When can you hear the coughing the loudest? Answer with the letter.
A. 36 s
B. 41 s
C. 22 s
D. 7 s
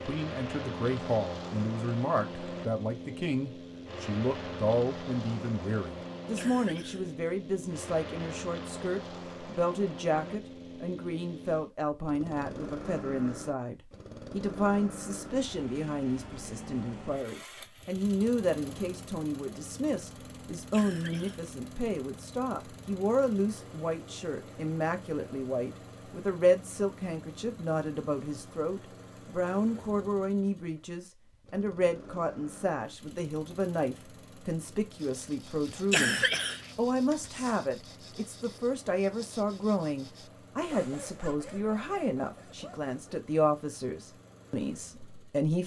A.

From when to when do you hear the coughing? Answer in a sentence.
The coughing can be heard from 6.3 to 7.0 s, from 20.7 to 21.5 s and from 35.7 to 37.5 s.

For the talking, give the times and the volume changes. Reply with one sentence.
The talking can be heard from 0.1 to 45.6 s, at a steady volume.